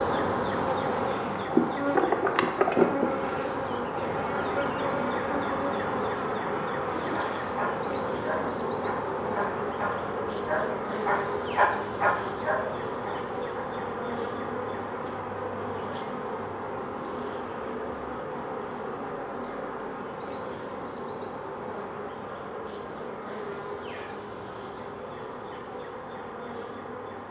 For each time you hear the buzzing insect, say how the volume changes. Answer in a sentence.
The buzzing insect can be heard from 0.0 to 27.2 s, getting quieter.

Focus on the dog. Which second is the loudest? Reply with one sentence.
The volume of the dog peaks at 12 seconds.